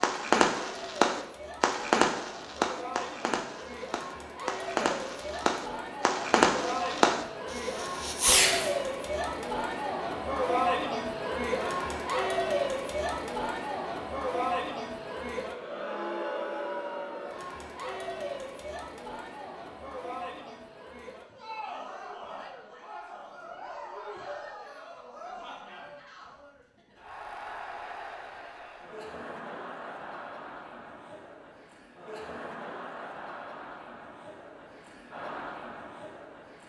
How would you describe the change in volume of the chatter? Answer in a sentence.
The volume of the chatter goes up, then down.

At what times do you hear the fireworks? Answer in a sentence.
The fireworks can be heard from 0.0 to 8.8 s.